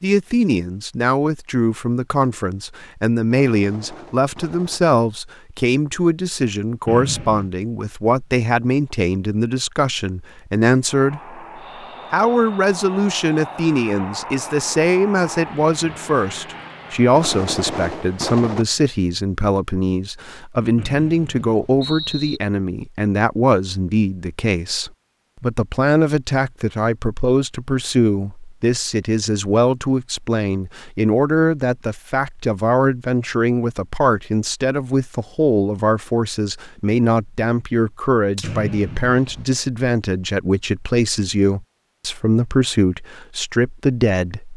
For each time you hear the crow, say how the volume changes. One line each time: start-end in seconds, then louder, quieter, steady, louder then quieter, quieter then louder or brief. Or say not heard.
not heard.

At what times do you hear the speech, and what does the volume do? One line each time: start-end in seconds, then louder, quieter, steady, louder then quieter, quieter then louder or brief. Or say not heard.
0.0-11.4 steady
12.1-44.5 steady.